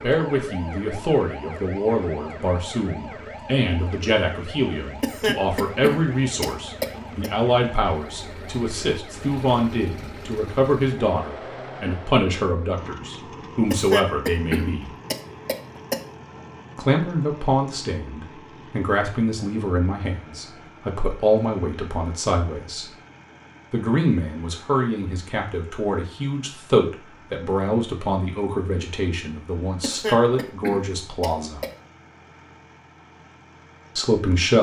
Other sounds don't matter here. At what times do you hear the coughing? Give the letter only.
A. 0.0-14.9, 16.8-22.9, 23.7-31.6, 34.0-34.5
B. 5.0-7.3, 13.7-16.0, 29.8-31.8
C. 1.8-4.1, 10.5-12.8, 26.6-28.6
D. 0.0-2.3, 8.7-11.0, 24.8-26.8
B.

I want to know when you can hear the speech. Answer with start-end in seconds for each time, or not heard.
0.0-14.9, 16.8-22.9, 23.7-31.6, 34.0-34.5.